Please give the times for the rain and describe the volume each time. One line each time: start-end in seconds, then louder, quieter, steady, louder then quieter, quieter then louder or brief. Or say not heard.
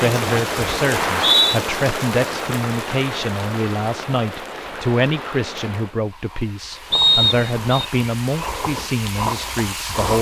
0.0-10.1 quieter then louder.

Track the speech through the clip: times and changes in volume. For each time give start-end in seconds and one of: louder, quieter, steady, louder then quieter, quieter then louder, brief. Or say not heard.
0.0-10.1 steady.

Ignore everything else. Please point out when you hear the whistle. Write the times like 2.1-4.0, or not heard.
0.9-1.6, 6.9-7.8.